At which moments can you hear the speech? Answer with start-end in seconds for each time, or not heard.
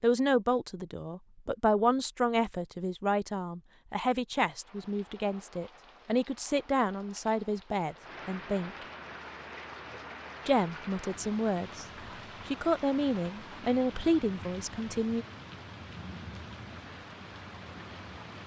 0.0-8.7, 10.4-11.8, 12.4-15.2.